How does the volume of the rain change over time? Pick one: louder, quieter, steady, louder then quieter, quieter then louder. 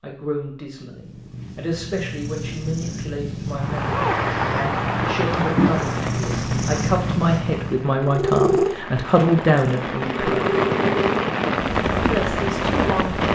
quieter then louder.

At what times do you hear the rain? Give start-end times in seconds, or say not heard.
3.5-13.2.